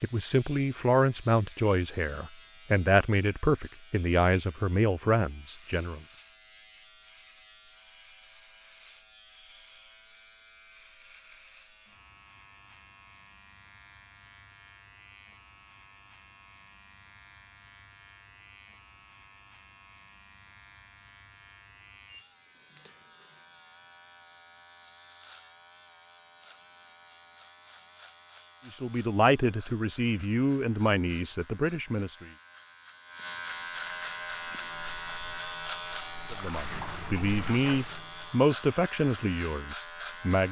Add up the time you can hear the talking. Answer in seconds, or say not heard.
14 s.